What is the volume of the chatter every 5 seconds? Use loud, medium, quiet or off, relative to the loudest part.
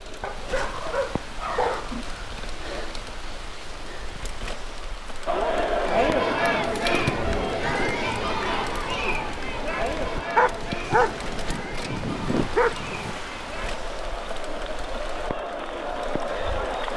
off, loud, medium, medium.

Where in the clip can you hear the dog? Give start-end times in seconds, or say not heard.
0.2-2.0, 10.3-13.2.